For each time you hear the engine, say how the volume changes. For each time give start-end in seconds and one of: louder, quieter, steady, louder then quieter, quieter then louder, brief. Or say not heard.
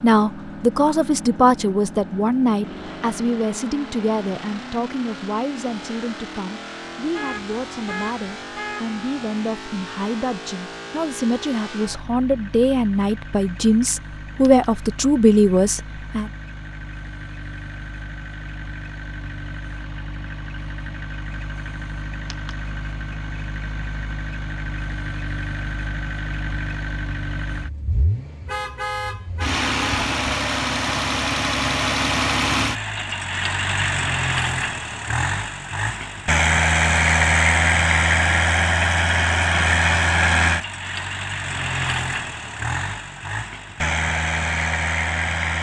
0.0-45.5 louder.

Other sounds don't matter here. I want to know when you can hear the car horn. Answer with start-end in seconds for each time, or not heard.
7.1-8.9, 28.4-30.1.